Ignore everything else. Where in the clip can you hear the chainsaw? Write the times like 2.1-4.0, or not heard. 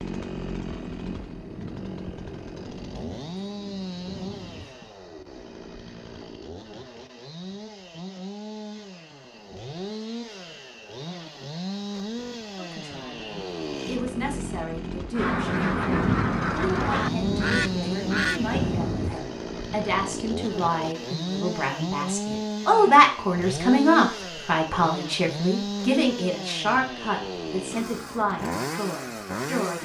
0.0-29.7.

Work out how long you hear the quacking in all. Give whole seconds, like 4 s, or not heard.
3 s.